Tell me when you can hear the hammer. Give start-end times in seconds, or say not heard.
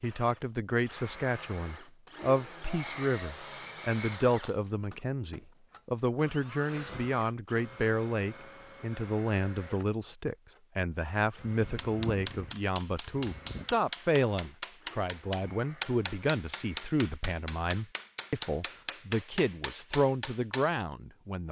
11.6-20.9.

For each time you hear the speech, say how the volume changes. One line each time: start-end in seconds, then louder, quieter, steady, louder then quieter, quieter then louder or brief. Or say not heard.
0.0-21.4 steady.